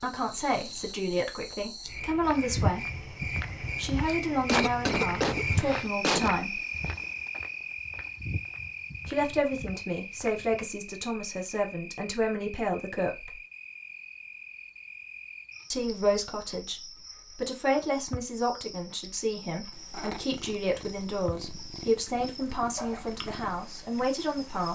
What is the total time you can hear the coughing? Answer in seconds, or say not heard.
2 s.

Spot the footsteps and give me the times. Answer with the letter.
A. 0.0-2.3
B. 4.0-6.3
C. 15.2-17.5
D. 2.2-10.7
D.